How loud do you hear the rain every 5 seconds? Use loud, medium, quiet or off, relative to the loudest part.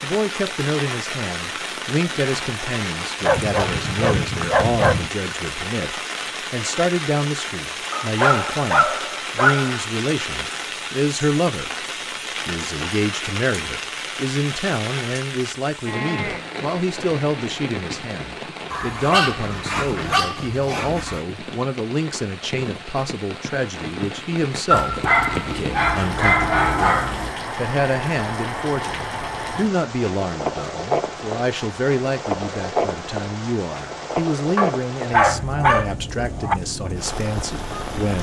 loud, loud, loud, medium, medium, loud, loud, medium.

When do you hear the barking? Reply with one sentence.
The barking can be heard from 3.2 to 5.1 s, from 7.9 to 9.8 s, from 18.7 to 21.2 s, from 24.7 to 27.4 s and from 34.5 to 36.5 s.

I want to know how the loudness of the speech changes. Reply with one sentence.
The volume of the speech stays about the same.